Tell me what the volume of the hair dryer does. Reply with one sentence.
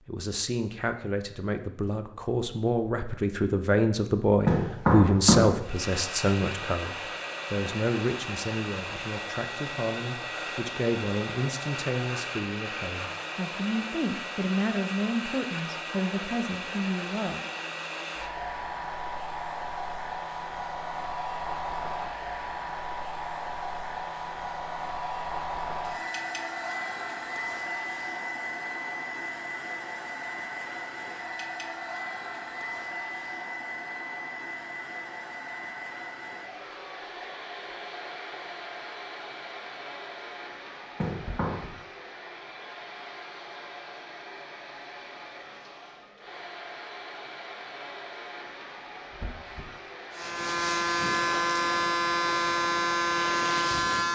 The volume of the hair dryer goes down.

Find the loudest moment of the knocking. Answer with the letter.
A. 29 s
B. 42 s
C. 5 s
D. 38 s
C.